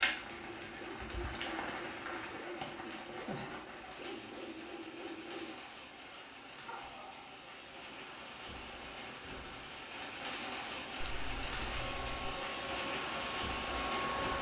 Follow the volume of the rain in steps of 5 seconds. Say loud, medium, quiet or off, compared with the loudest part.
loud, medium, loud.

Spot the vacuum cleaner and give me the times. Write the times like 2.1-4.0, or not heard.
11.7-14.3.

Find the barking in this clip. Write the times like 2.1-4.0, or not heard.
0.1-7.3.